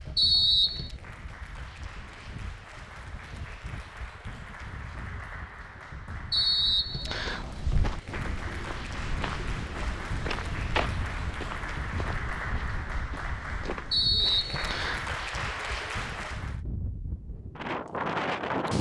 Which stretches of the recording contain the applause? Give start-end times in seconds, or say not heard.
0.0-16.6.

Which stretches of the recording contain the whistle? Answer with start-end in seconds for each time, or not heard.
0.1-0.9, 6.3-7.5, 13.9-15.1.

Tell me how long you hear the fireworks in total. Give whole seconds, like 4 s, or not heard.
not heard.